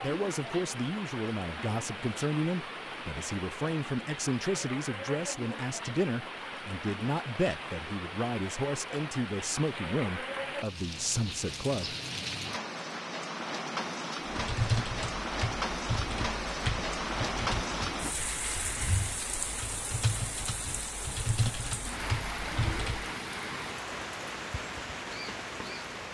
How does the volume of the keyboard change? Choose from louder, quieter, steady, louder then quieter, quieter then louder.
quieter then louder.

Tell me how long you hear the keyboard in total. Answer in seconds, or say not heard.
9 s.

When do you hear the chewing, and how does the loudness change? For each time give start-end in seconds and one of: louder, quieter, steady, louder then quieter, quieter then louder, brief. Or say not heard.
not heard.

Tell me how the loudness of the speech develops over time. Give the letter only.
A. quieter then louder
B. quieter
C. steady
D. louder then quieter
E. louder
C.